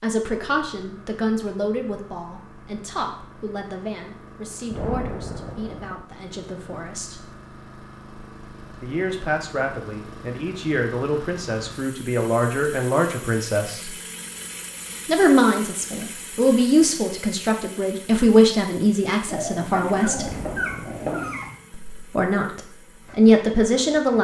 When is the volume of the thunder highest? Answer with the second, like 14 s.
5 s.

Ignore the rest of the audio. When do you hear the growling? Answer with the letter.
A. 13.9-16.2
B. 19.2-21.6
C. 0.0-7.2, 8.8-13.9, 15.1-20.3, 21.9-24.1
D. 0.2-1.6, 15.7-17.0
B.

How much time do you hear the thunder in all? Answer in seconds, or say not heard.
3 s.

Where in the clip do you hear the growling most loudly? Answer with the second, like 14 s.
21 s.